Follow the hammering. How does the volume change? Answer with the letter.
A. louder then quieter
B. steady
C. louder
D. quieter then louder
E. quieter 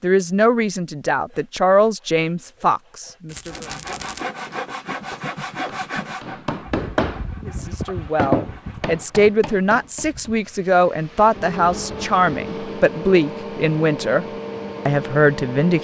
A.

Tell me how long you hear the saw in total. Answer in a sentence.
You can hear the saw for 8 seconds altogether.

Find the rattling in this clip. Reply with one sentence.
You can hear the rattling from 3.2 to 4.2 s.